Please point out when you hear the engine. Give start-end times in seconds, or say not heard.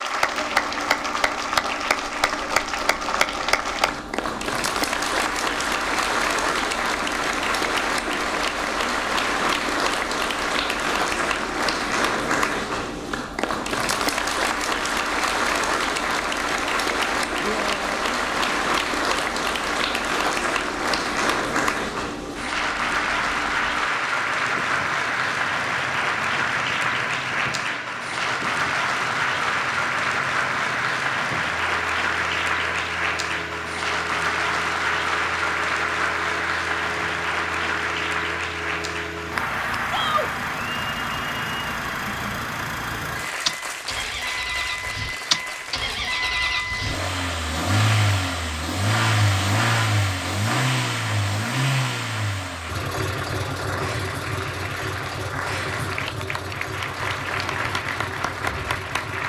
0.0-59.2.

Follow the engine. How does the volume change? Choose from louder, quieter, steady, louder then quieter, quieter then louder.
louder.